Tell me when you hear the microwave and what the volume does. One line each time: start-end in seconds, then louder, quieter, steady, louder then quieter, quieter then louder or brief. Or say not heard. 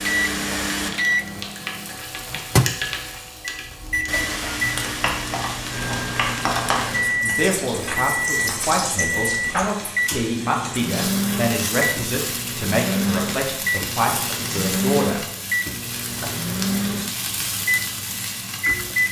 0.0-19.0 steady.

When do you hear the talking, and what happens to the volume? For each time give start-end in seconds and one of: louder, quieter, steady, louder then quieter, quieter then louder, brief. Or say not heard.
7.2-15.2 steady.